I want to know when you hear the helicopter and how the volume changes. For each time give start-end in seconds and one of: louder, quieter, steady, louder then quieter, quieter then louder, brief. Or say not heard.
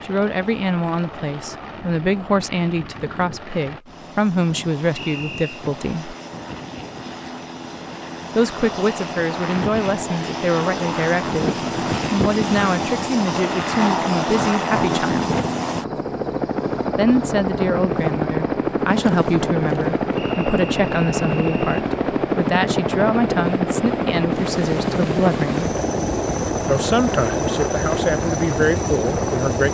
0.0-29.6 louder.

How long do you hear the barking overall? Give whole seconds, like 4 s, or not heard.
not heard.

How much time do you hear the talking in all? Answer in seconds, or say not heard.
25 s.